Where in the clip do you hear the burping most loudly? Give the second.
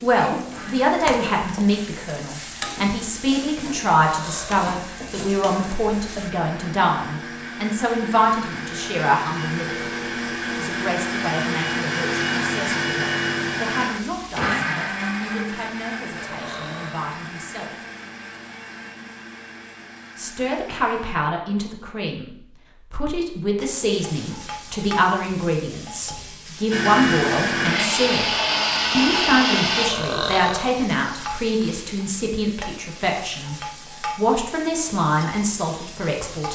30 s.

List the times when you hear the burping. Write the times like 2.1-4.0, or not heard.
4.0-4.7, 16.1-17.1, 29.8-30.8.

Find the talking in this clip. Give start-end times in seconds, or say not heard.
0.0-9.9, 10.6-17.8, 20.1-22.3, 22.9-28.3, 28.9-33.5, 34.1-36.5.